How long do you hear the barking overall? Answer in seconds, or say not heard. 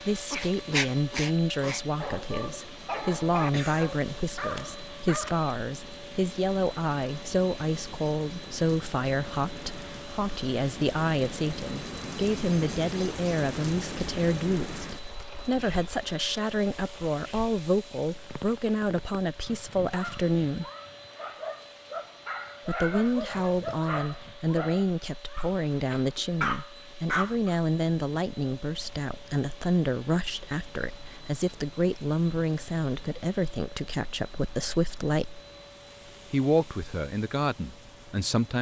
12 s.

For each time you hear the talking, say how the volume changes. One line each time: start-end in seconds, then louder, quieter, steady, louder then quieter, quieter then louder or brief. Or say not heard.
0.0-20.6 steady
22.6-35.4 steady
36.3-38.5 brief.